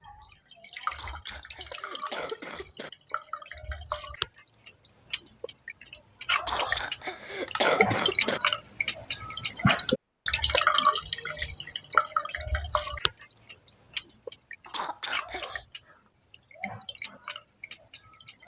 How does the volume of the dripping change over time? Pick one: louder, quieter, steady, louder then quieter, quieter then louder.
louder then quieter.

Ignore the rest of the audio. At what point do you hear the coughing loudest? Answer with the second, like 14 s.
8 s.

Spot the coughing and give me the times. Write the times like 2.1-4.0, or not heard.
0.9-2.9, 6.5-8.4, 14.7-15.6.